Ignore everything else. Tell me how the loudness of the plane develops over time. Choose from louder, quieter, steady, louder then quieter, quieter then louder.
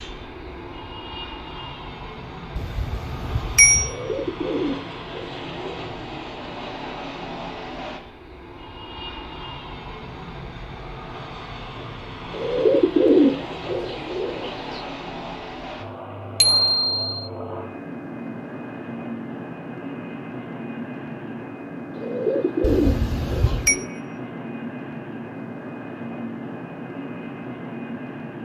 steady.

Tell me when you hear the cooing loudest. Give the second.
13 s.